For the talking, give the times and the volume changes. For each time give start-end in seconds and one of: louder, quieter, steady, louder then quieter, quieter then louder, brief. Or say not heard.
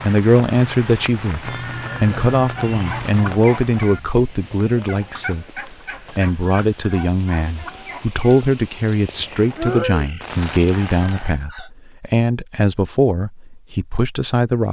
0.0-14.6 steady.